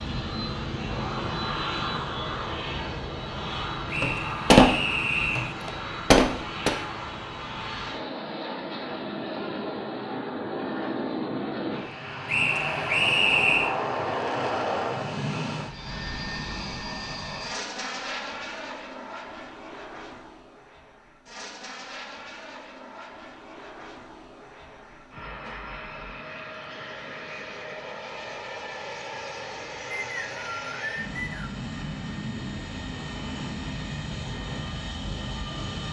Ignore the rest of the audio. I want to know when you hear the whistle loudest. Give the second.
13 s.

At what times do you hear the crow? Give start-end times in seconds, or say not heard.
not heard.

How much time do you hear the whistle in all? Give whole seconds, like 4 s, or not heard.
5 s.